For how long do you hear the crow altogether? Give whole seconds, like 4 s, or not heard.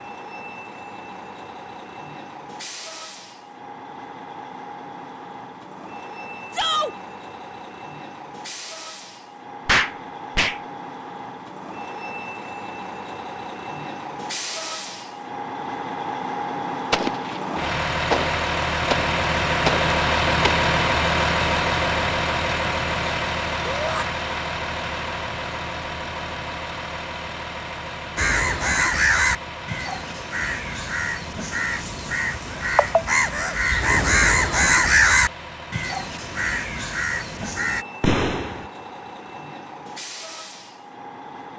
10 s.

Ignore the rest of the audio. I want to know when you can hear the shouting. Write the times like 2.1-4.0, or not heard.
6.5-7.0, 23.6-24.1.